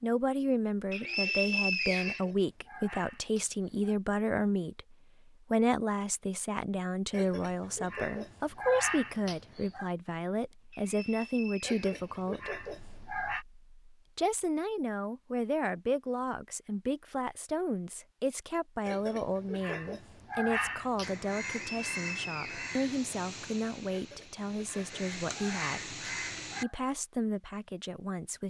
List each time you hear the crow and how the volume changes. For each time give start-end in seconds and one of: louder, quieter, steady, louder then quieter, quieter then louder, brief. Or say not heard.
21.0-26.6 quieter then louder.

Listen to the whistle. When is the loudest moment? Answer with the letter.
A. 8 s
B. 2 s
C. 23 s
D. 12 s
B.